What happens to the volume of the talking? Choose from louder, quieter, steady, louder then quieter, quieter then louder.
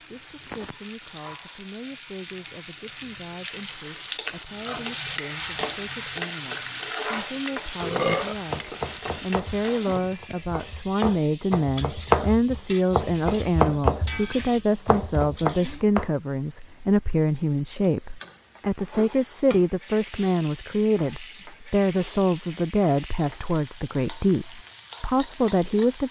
louder.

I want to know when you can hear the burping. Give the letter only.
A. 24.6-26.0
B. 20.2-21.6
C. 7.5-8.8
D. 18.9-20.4
C.